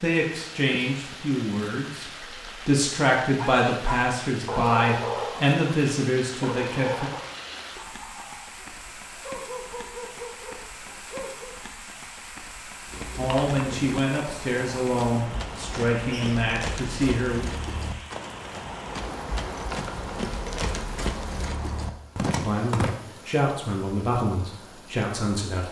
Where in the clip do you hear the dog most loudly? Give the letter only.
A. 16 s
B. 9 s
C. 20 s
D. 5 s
D.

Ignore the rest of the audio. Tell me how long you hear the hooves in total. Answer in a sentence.
The hooves can be heard for 10 seconds in total.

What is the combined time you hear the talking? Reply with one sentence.
The talking can be heard for 15 seconds in total.